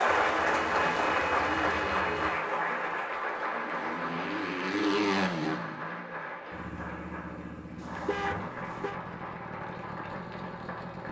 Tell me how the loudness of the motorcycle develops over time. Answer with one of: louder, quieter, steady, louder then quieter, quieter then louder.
louder then quieter.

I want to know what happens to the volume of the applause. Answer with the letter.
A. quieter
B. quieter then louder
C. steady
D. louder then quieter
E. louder
A.